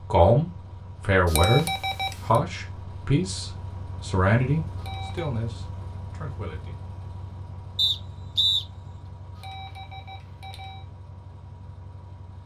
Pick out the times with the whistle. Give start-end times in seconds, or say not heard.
7.8-8.7.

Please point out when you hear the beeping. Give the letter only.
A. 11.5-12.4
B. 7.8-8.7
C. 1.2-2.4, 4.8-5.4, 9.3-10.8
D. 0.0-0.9
C.